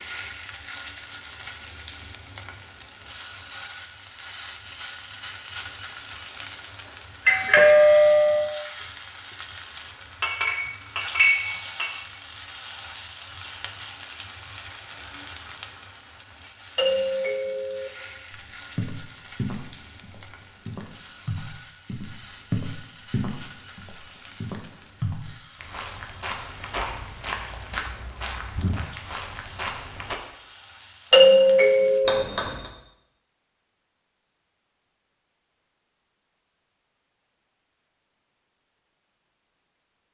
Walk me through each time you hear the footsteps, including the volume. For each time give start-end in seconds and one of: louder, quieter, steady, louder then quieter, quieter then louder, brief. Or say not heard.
18.3-30.1 steady.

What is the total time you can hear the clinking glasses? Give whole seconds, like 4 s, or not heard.
2 s.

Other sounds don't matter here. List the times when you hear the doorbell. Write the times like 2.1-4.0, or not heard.
7.2-8.5, 16.8-17.9, 31.1-32.2.